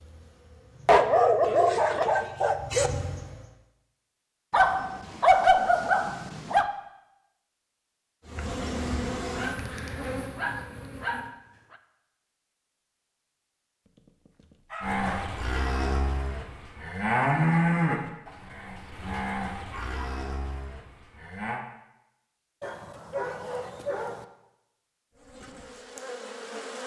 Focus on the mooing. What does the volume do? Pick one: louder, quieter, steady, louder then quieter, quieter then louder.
louder then quieter.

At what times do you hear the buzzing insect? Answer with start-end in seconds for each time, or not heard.
0.0-3.6, 8.2-11.3, 25.1-26.8.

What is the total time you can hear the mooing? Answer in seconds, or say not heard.
7 s.